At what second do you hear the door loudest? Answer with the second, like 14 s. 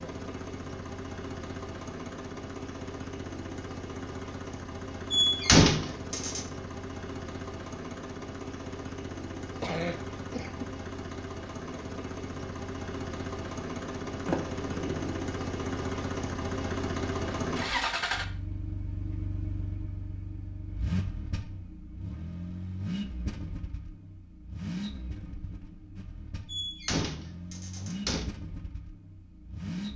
6 s.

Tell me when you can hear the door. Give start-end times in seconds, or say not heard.
5.1-6.5, 14.2-15.1, 26.4-28.2.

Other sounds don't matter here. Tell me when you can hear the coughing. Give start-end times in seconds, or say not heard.
9.6-10.8.